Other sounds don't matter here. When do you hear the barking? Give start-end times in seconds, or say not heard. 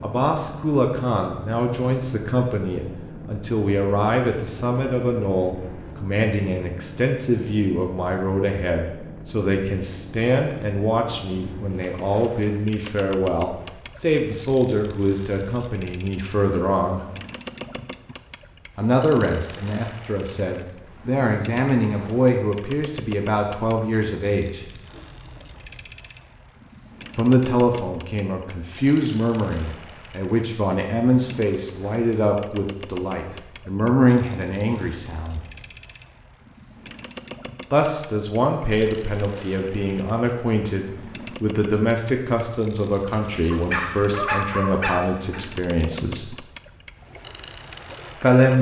43.5-45.4.